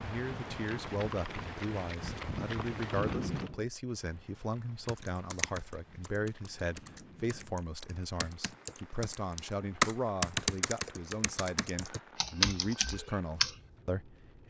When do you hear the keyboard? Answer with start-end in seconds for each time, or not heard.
4.8-13.5.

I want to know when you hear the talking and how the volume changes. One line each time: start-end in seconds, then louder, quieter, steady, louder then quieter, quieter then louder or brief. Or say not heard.
0.0-14.4 steady.